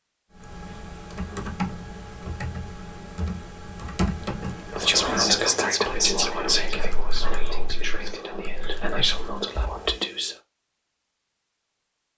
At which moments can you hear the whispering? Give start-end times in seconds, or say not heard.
4.8-10.3.